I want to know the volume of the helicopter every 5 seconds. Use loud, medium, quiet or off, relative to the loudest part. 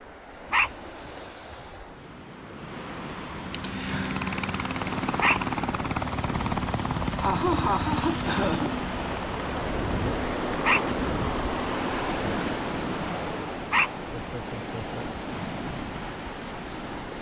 loud, loud, medium, off.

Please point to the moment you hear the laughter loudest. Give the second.
8 s.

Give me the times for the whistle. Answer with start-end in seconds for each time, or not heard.
not heard.